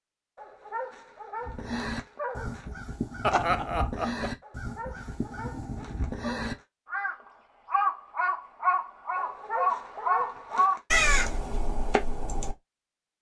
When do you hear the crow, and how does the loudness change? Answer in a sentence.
You can hear the crow from 1.4 to 12.6 s, getting louder.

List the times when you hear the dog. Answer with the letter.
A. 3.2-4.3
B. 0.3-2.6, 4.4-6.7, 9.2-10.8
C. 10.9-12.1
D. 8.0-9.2
B.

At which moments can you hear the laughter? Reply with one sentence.
You can hear the laughter from 3.2 to 4.3 s.